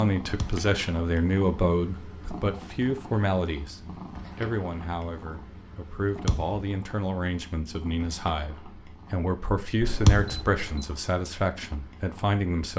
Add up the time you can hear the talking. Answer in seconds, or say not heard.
13 s.